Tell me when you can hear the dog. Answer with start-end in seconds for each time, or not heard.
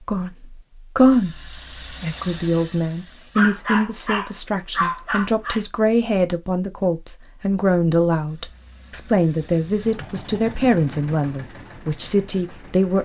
3.4-5.7.